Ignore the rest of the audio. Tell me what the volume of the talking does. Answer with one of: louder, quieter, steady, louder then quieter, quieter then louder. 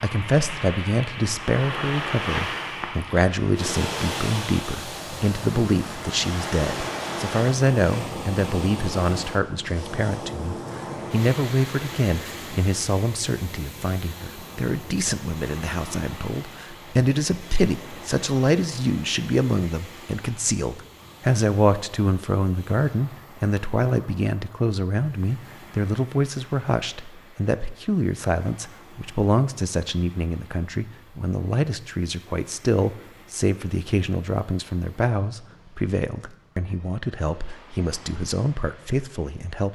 steady.